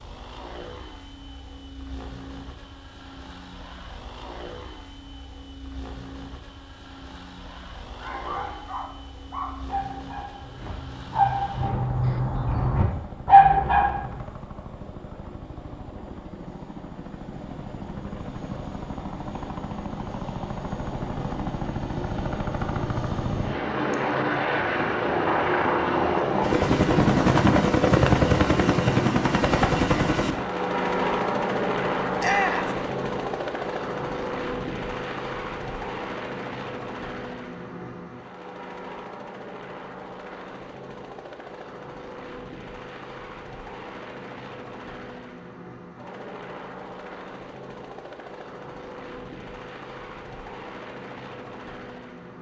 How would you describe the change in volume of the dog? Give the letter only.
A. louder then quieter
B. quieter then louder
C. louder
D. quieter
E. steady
C.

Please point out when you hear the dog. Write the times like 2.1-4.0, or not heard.
8.0-14.0.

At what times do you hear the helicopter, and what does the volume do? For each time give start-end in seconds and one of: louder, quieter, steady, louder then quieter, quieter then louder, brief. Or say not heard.
0.0-52.3 louder then quieter.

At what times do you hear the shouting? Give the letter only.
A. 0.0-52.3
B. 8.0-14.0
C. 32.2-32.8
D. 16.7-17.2
C.